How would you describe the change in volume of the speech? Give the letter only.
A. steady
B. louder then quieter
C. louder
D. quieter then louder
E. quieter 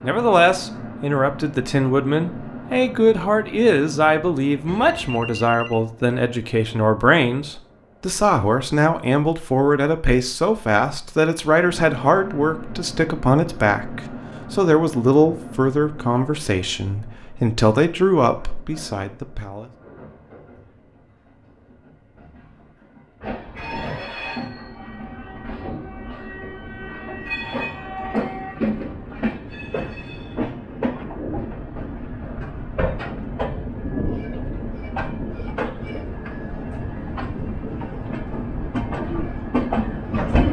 A.